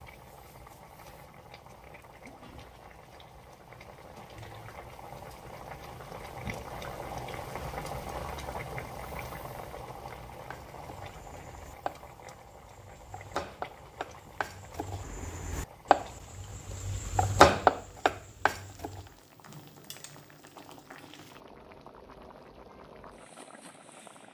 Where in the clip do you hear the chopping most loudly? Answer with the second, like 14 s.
18 s.